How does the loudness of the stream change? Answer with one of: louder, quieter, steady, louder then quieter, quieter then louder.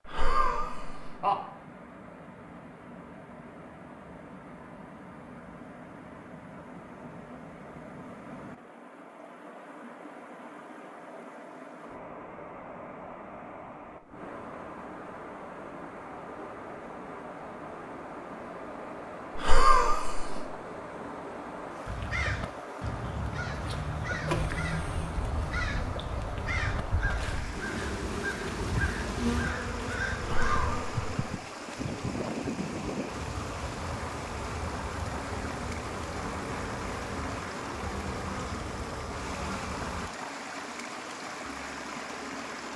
louder.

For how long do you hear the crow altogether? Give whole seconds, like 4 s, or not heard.
9 s.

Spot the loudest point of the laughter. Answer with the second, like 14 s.
20 s.